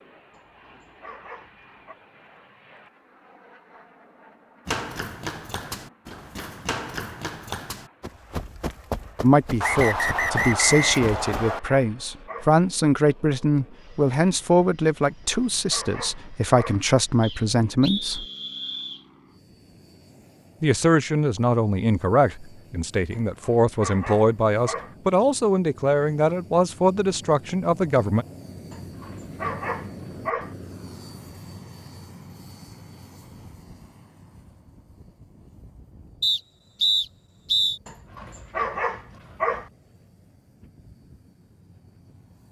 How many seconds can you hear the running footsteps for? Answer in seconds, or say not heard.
7 s.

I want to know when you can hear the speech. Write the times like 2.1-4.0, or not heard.
9.2-18.2, 20.6-28.2.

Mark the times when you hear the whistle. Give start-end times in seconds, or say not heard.
9.6-11.6, 17.2-19.1, 36.2-37.8.